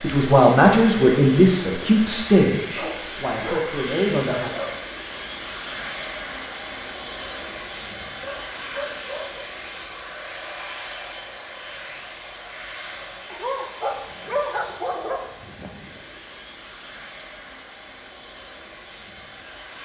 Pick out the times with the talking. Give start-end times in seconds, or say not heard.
0.0-4.6.